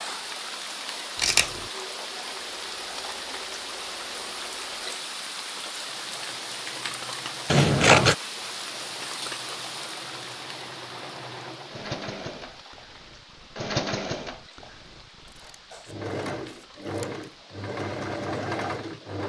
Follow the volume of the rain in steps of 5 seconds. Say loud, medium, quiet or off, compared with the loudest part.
loud, loud, medium, quiet.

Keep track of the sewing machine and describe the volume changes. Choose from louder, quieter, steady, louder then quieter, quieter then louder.
louder.